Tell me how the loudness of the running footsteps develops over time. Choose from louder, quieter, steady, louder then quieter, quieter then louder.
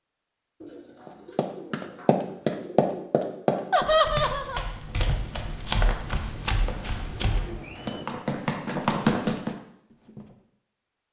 quieter then louder.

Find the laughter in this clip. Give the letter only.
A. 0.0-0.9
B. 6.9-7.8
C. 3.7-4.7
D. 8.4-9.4
C.